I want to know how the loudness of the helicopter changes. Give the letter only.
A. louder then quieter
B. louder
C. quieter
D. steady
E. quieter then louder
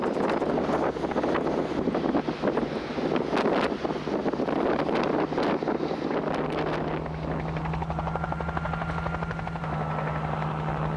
B.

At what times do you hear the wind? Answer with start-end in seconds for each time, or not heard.
0.0-7.7.